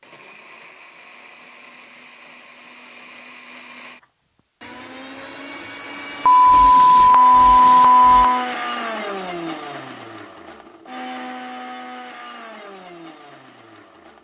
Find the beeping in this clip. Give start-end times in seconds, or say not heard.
6.2-8.4.